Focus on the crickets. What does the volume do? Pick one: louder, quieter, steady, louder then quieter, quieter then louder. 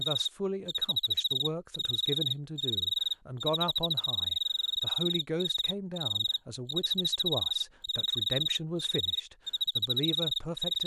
steady.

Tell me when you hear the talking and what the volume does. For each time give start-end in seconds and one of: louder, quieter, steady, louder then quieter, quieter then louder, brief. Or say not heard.
0.0-10.8 steady.